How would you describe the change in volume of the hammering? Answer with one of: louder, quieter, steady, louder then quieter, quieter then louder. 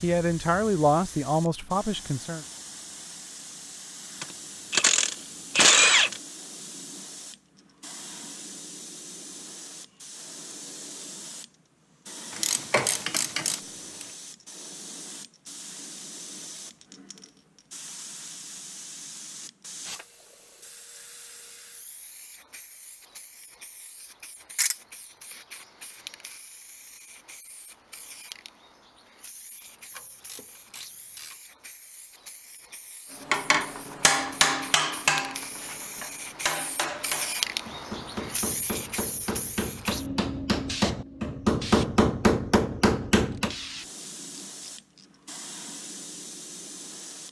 quieter then louder.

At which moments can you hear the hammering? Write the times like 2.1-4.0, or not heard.
33.2-43.5.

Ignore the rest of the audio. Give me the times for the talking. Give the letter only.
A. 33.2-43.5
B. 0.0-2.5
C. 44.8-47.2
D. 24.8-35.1
B.